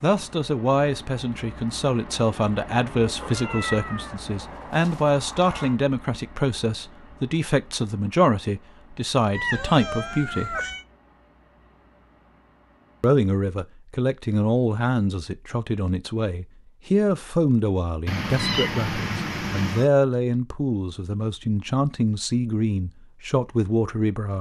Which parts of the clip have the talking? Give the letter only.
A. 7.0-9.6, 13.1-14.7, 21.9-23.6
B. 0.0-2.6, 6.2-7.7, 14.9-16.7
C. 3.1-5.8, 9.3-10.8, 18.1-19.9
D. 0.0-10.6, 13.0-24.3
D.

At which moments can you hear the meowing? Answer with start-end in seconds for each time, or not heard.
3.1-5.8, 9.3-10.8, 18.1-19.9.